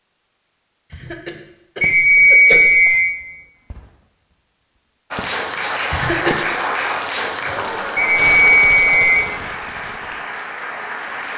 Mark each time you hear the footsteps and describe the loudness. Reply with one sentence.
The footsteps can't be heard in this clip.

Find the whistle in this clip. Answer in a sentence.
The whistle can be heard from 1.8 to 3.1 s and from 8.0 to 9.2 s.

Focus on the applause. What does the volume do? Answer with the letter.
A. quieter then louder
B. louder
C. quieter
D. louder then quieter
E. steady
C.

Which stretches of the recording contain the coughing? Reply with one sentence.
You can hear the coughing from 0.9 to 2.6 s and from 5.9 to 6.4 s.